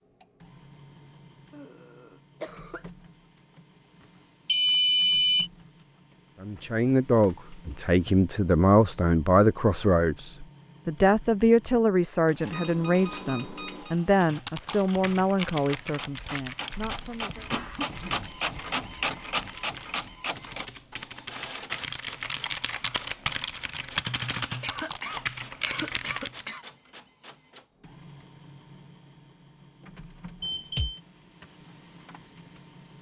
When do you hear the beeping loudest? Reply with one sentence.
The loudest moment of the beeping is at 5 seconds.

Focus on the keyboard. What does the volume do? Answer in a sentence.
The loudness of the keyboard goes down, then up.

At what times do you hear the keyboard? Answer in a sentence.
You can hear the keyboard from 14.2 to 26.6 s.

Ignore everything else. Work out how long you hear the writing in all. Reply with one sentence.
The writing can't be heard in this clip.